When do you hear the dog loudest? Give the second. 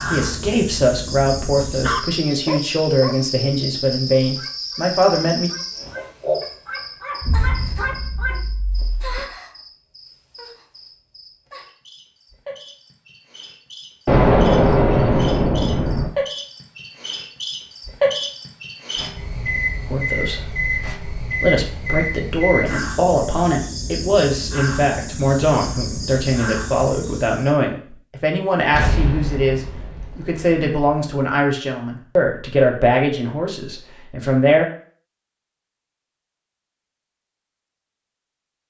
2 s.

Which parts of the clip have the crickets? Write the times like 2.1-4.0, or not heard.
0.0-27.6.